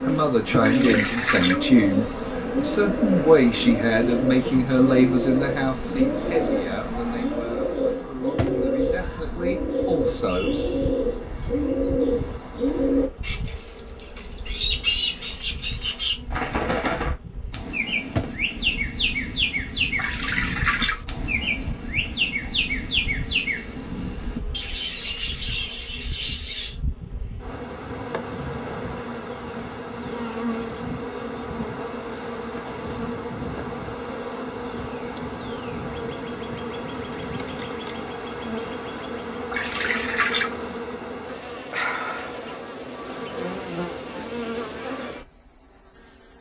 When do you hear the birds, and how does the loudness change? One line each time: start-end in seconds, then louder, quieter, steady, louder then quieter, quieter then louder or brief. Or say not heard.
0.0-26.8 steady.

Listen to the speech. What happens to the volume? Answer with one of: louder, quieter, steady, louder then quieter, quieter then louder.
quieter.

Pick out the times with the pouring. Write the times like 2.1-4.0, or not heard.
0.6-1.6, 19.9-21.1, 39.5-40.5.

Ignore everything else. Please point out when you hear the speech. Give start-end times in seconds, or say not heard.
0.0-10.6.